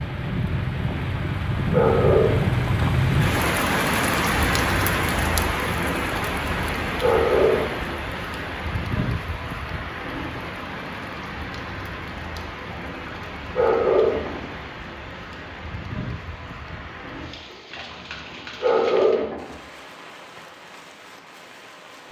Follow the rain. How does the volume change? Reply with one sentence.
The loudness of the rain goes down.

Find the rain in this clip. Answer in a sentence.
You can hear the rain from 0.0 to 22.0 s.